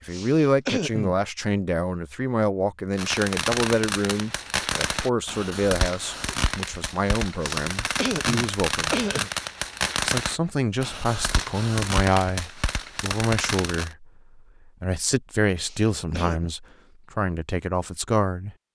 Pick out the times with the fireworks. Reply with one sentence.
You can hear the fireworks from 3.0 to 13.9 s.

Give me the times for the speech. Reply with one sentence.
You can hear the speech from 0.1 to 9.0 s and from 10.1 to 18.6 s.